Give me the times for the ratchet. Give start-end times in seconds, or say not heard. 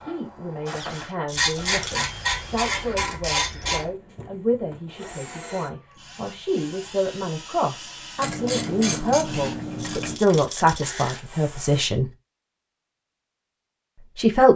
1.4-3.9, 8.2-10.2.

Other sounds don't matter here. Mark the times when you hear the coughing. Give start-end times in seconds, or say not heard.
not heard.